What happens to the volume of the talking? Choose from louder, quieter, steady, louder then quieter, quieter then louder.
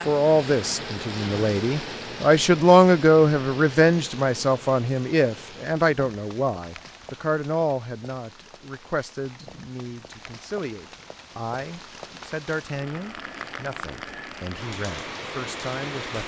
quieter.